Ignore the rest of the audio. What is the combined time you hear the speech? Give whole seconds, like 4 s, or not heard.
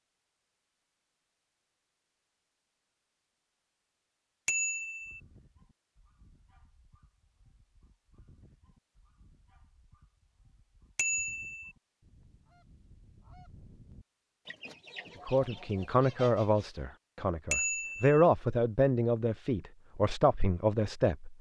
6 s.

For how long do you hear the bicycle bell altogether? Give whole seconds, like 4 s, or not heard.
2 s.